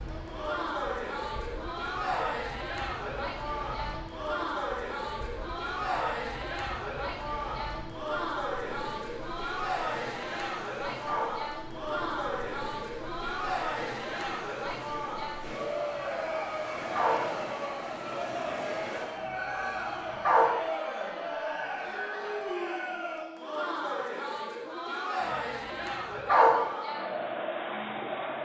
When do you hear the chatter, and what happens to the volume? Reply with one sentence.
The chatter can be heard from 0.1 to 28.4 s, at a steady volume.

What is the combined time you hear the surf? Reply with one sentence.
The surf can be heard for 19 seconds in total.